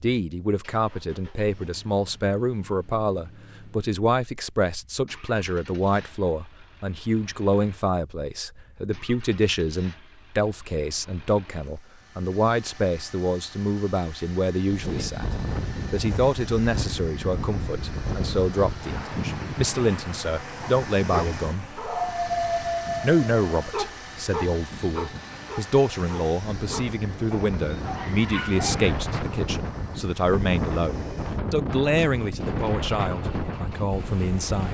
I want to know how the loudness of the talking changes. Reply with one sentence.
The loudness of the talking stays about the same.